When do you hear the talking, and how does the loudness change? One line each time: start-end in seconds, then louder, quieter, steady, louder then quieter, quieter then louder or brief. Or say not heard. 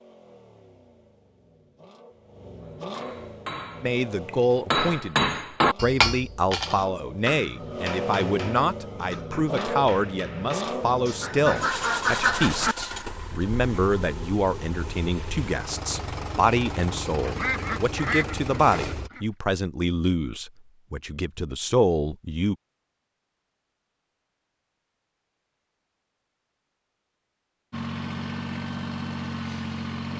3.8-22.6 steady.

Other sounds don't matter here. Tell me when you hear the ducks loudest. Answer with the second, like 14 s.
12 s.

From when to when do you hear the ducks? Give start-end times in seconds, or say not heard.
11.2-12.8, 17.2-19.2.